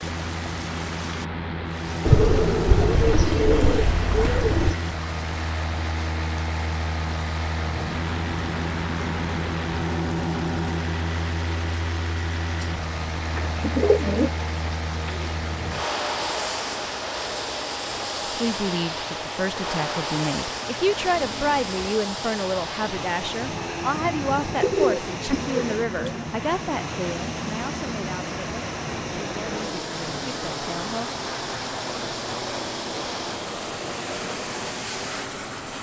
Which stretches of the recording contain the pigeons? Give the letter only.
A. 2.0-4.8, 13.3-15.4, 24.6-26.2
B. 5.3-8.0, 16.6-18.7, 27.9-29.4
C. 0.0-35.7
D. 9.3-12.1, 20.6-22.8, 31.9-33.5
A.